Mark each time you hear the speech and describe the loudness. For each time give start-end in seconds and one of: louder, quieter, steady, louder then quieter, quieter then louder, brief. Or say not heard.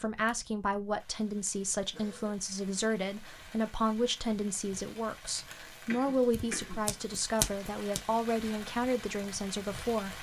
0.0-10.1 steady.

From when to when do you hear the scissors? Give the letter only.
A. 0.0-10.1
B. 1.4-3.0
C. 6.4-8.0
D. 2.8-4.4
C.